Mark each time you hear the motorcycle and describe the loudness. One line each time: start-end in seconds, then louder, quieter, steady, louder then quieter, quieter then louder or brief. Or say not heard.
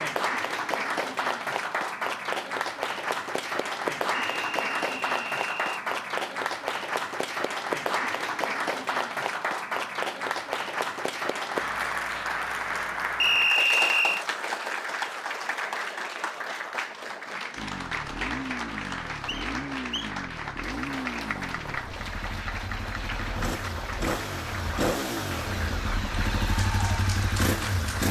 17.6-28.0 louder.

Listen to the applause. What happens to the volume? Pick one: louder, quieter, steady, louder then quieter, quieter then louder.
quieter.